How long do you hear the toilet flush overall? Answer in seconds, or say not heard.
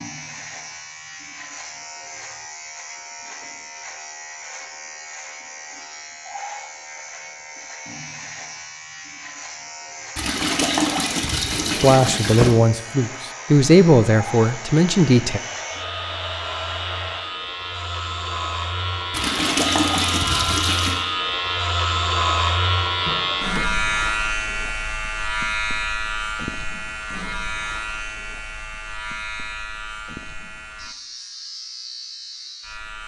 4 s.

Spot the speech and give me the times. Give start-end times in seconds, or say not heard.
11.8-15.4.